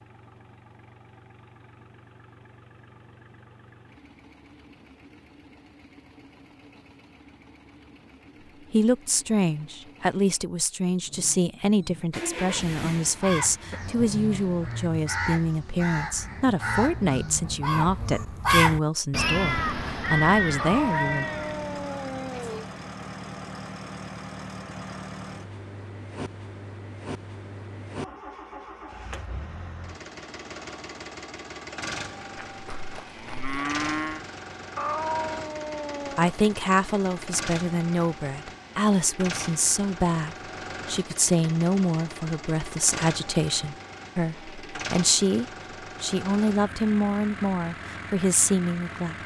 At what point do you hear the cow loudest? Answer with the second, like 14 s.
34 s.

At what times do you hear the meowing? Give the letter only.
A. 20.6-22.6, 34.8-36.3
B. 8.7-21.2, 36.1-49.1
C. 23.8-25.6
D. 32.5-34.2
A.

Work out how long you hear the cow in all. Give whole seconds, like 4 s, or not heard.
2 s.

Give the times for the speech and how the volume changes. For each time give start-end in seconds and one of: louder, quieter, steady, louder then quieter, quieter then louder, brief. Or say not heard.
8.7-21.2 steady
36.1-49.1 steady.